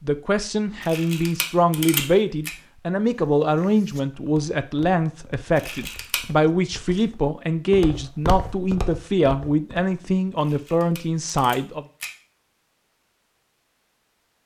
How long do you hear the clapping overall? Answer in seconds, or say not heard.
not heard.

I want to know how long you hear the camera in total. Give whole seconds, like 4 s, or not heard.
4 s.